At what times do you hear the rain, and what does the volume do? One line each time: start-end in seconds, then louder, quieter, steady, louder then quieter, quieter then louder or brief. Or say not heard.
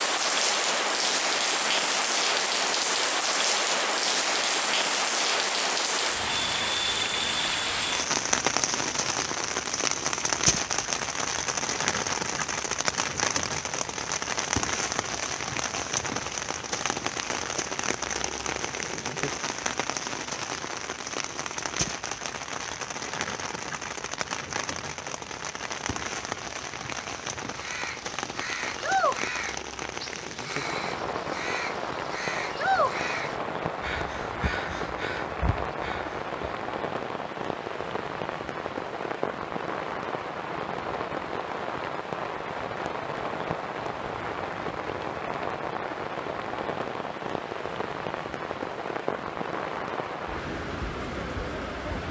0.0-52.0 quieter.